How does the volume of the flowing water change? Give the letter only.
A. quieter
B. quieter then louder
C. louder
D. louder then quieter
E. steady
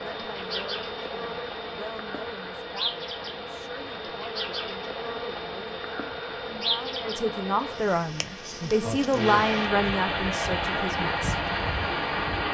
C.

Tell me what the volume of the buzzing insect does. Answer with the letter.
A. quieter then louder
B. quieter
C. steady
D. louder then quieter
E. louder
B.